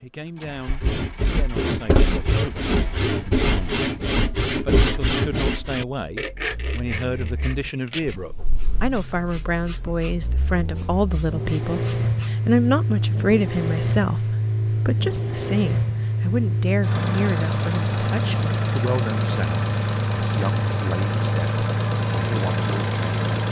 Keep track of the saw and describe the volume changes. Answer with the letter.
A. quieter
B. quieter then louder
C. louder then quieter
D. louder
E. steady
A.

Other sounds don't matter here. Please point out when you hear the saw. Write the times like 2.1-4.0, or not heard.
0.7-12.3.